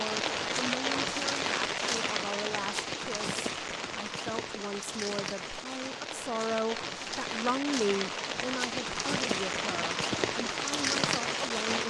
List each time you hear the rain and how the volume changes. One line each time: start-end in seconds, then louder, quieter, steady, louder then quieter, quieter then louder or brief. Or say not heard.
0.0-11.8 quieter then louder.